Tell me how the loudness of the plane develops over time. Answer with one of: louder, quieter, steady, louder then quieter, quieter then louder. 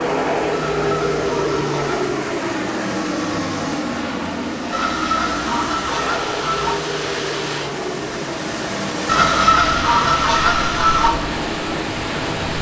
quieter.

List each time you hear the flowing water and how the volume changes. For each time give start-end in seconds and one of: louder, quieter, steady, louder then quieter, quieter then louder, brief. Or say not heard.
0.0-12.5 louder.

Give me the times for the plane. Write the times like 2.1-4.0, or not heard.
0.0-12.5.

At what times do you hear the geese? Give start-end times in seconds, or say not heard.
0.5-2.0, 4.7-6.8, 9.1-11.1.